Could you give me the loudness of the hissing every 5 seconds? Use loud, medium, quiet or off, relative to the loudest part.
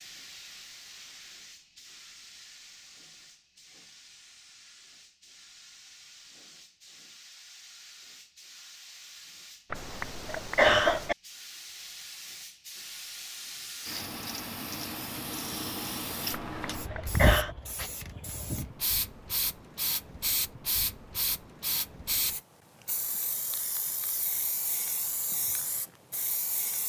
quiet, quiet, medium, loud, loud, loud.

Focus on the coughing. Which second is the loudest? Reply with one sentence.
The loudest moment of the coughing is at 11 seconds.